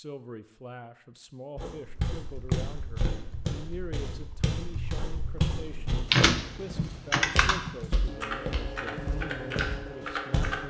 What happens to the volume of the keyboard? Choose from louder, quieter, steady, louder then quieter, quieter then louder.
louder then quieter.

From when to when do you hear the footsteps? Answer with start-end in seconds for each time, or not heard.
1.6-10.6.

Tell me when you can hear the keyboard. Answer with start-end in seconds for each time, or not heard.
1.9-10.6.